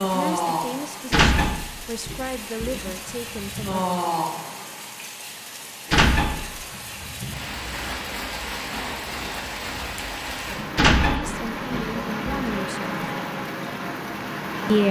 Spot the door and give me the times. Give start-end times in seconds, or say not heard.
1.1-3.0, 5.9-6.5, 10.8-12.6.